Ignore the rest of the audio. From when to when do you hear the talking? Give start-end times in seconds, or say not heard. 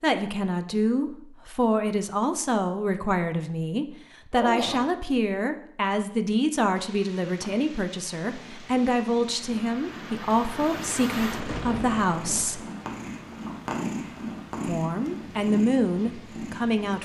0.0-12.7, 14.7-17.0.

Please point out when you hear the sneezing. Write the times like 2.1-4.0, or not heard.
4.3-4.8.